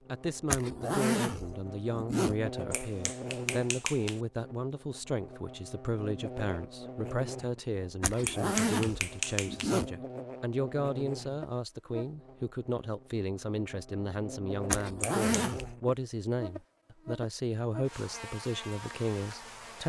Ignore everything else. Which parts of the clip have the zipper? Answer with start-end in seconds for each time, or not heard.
0.5-2.4, 8.0-9.9, 14.7-15.8.